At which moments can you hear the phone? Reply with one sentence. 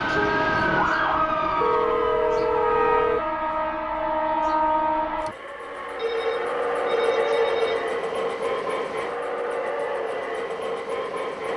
The phone can be heard from 1.6 to 3.2 s and from 6.0 to 7.9 s.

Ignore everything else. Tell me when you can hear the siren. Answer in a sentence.
You can hear the siren from 0.0 to 3.1 s.